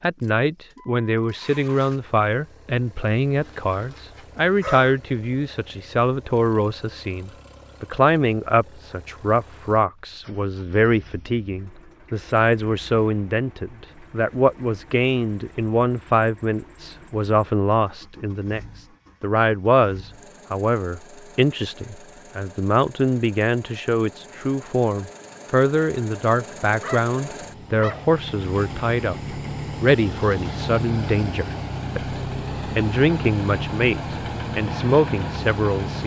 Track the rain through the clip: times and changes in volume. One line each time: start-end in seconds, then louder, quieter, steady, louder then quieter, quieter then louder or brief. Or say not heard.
not heard.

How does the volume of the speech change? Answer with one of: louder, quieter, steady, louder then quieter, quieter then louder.
steady.